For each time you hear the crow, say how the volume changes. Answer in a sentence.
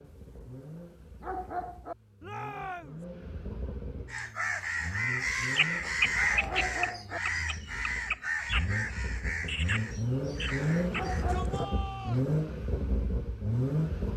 The crow can be heard from 4.1 to 11.2 s, getting quieter.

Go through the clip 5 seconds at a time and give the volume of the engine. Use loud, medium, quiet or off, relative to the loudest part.
quiet, medium, loud.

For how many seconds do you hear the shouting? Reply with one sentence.
You can hear the shouting for 3 seconds altogether.